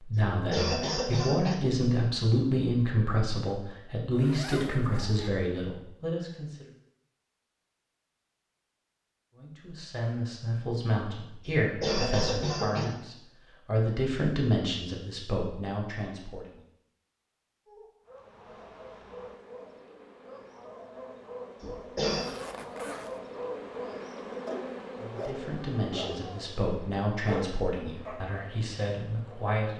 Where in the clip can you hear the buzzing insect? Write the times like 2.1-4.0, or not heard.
18.0-29.6.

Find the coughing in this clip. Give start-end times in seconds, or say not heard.
0.1-1.6, 11.4-12.8, 21.6-22.4.